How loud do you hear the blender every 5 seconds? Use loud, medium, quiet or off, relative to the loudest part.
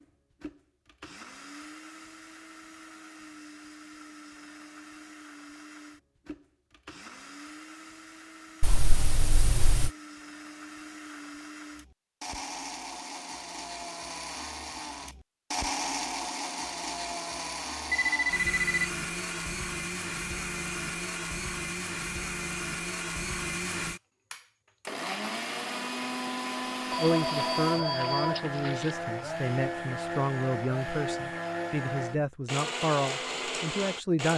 quiet, quiet, medium, loud, loud, loud, loud.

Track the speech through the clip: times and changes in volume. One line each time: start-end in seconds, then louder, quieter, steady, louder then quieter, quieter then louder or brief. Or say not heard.
26.9-34.3 steady.